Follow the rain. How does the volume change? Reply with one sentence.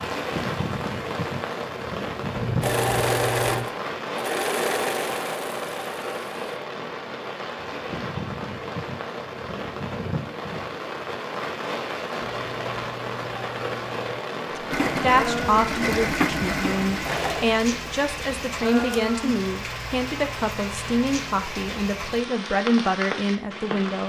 The volume of the rain stays about the same.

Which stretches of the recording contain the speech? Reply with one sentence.
The speech can be heard from 14.6 to 24.0 s.